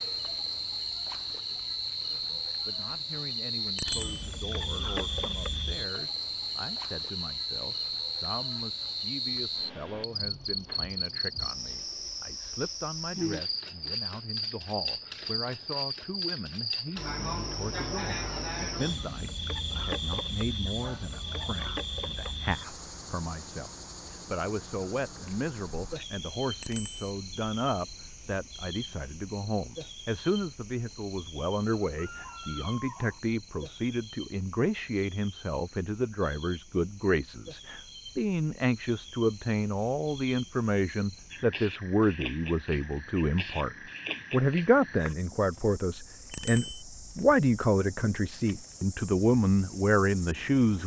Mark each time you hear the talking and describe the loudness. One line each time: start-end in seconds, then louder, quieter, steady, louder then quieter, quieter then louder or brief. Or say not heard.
2.1-50.8 louder.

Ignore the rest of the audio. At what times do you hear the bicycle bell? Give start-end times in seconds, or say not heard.
3.8-4.2, 26.6-27.1, 46.3-46.8.